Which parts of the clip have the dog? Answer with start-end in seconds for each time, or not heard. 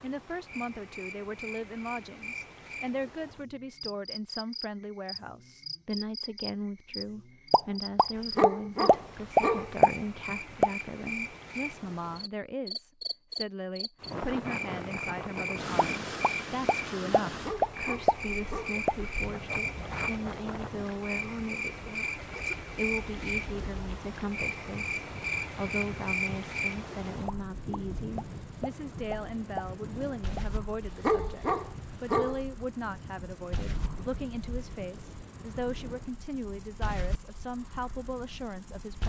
8.2-9.8, 17.4-18.8, 30.9-32.4.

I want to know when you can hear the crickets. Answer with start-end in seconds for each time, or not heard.
0.0-39.0.